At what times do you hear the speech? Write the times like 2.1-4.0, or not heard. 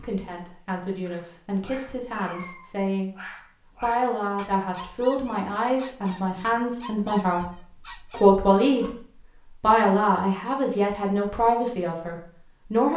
0.0-3.1, 3.8-8.9, 9.6-12.9.